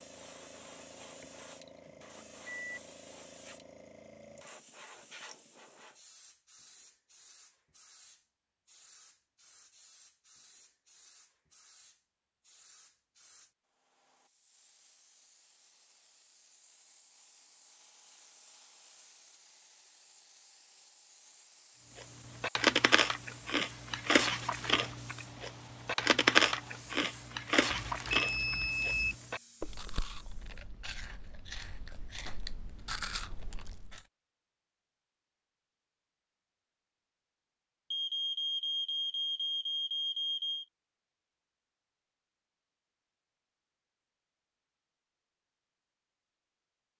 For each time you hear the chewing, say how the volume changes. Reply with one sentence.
You can hear the chewing from 21.9 to 34.0 s, getting quieter.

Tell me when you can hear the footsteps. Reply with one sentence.
The footsteps can't be heard in this clip.